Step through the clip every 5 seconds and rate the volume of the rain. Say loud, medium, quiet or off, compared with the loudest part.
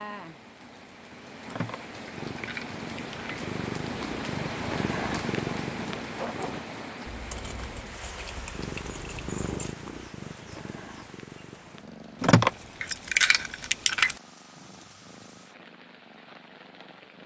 loud, loud, quiet, quiet.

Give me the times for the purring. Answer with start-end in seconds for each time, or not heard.
2.1-6.6, 8.6-17.2.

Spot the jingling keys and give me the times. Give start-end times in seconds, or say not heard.
1.4-3.2, 7.1-9.8, 12.2-14.2.